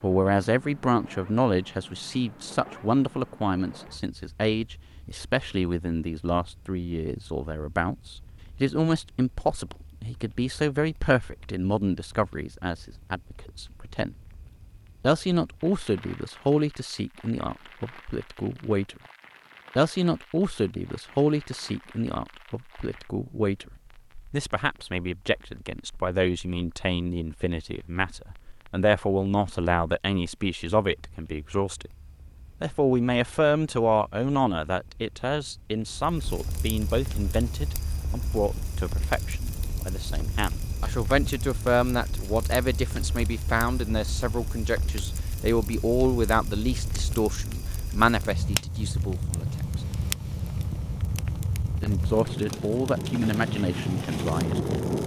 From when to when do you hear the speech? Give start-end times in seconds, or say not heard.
0.0-14.2, 15.0-18.9, 19.8-23.6, 24.3-31.9, 32.6-49.8, 51.8-55.0.